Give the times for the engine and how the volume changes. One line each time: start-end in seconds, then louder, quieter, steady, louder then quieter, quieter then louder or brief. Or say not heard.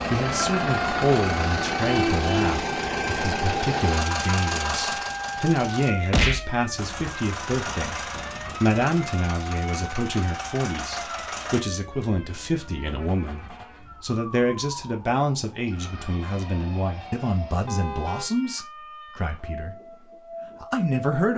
0.0-11.6 quieter.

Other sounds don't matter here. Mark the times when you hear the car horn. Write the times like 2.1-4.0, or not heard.
1.8-2.6, 17.6-18.3.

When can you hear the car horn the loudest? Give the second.
2 s.